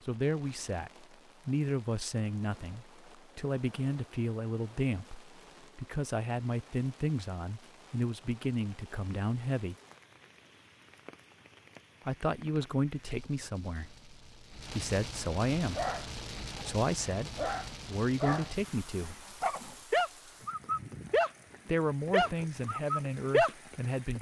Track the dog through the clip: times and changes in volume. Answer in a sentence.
The dog can be heard from 15.7 to 21.3 s, getting louder; and briefly from 22.1 to 23.5 s.